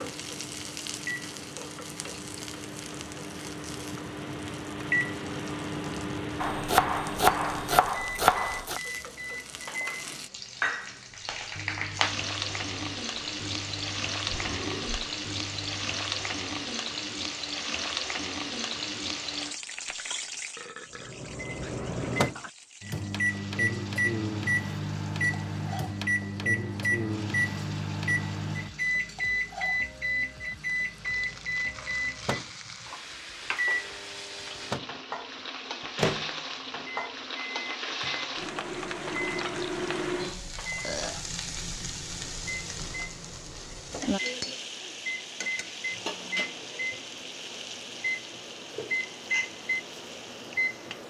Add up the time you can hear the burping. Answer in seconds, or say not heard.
3 s.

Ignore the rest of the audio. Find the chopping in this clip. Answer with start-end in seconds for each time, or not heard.
6.4-8.8.